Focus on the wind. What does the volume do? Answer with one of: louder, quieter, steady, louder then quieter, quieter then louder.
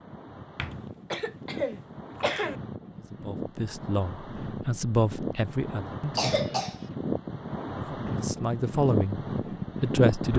louder.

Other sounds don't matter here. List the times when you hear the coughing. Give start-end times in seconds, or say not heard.
0.6-2.6, 6.2-6.8.